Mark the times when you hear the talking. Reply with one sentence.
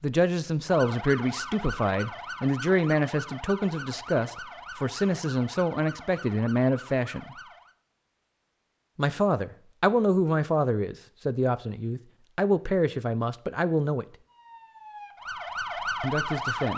The talking can be heard from 0.0 to 7.3 s, from 8.9 to 14.1 s and from 16.0 to 16.7 s.